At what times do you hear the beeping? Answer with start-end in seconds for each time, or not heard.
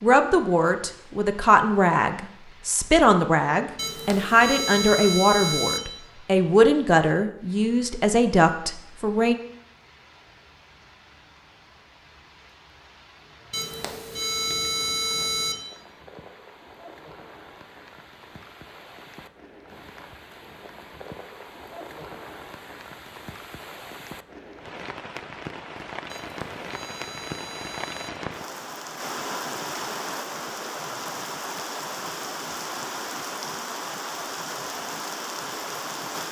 3.8-5.8, 13.5-15.6, 26.1-28.1.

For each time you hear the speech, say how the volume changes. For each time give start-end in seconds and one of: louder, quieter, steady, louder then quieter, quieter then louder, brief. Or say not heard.
0.0-9.3 steady.